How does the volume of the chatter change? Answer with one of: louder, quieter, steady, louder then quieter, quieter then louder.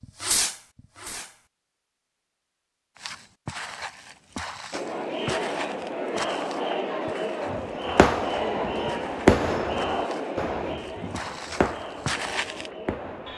quieter.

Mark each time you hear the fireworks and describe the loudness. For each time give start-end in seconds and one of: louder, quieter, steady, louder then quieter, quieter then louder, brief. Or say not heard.
0.2-1.4 brief
7.5-13.3 louder then quieter.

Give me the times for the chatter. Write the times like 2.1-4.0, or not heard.
4.7-13.3.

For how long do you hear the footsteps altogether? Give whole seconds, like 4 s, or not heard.
10 s.